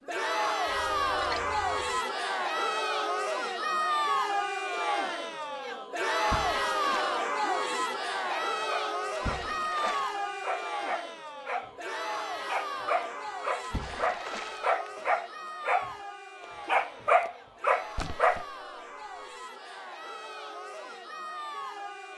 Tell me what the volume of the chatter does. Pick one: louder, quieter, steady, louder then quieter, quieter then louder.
quieter.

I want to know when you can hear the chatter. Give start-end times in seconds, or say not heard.
0.1-22.1.